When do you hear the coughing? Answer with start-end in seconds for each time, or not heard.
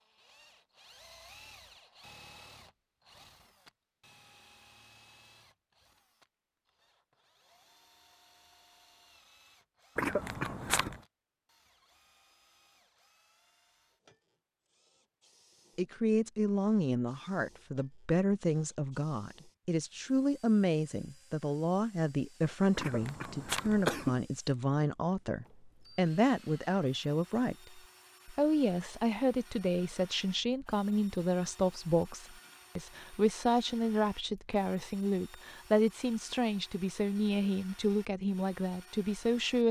9.9-11.0, 22.8-24.2.